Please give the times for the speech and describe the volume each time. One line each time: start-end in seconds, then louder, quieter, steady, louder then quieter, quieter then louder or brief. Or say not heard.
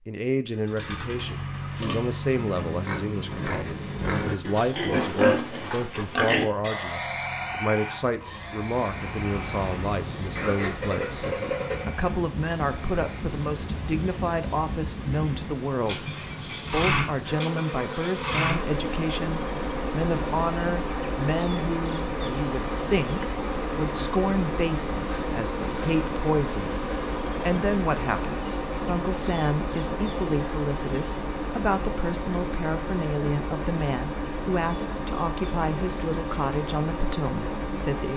0.1-26.8 steady
27.4-38.1 steady.